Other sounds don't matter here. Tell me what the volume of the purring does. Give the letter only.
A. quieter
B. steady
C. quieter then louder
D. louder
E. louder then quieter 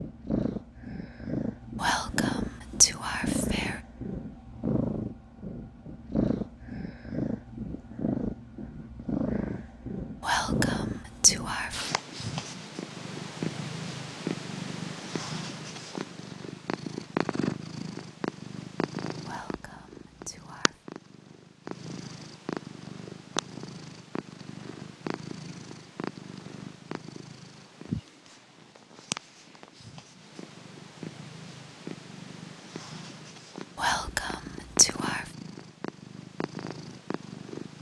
A.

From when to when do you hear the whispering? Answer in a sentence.
The whispering can be heard from 1.8 to 3.8 s, from 10.2 to 11.8 s, from 19.2 to 20.8 s and from 33.8 to 35.2 s.